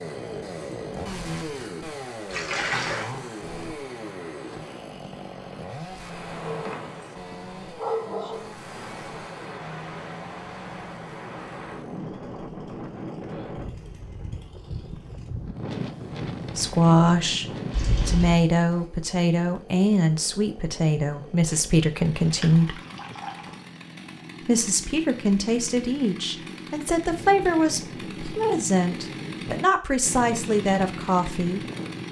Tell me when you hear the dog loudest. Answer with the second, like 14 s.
8 s.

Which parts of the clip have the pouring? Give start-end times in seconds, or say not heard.
2.3-3.1, 17.7-18.4, 22.3-23.6.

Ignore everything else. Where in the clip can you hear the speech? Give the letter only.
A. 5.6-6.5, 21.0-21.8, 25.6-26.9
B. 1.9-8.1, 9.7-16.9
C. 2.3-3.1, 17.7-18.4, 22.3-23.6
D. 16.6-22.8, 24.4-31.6
D.